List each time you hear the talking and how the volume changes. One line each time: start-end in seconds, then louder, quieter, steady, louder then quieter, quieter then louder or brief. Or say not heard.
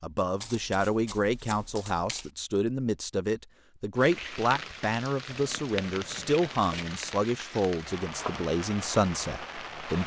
0.0-10.0 steady.